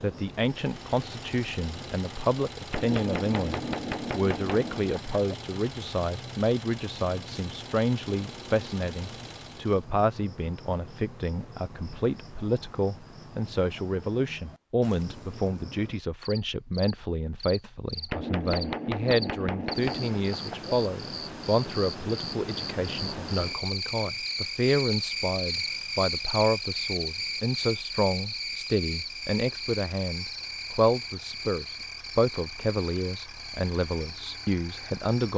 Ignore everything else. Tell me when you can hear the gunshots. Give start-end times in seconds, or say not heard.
2.7-5.2, 18.1-20.8.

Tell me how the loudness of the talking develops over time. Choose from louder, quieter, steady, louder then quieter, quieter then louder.
steady.